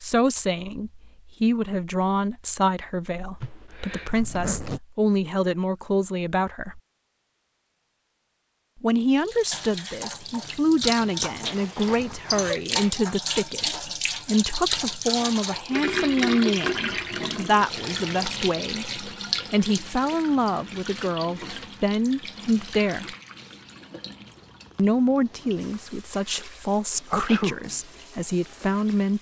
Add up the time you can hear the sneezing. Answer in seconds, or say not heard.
2 s.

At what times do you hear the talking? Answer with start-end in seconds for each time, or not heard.
0.0-6.8, 8.8-23.1, 24.8-29.1.